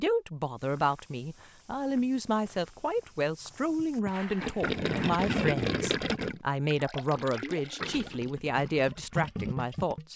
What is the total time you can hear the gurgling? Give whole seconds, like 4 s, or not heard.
6 s.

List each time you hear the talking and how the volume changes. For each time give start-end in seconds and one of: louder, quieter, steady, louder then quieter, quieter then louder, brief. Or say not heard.
0.0-10.1 steady.